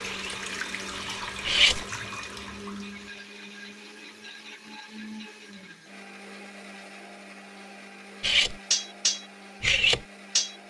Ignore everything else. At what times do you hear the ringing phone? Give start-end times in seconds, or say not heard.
not heard.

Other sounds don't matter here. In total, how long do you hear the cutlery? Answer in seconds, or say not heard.
4 s.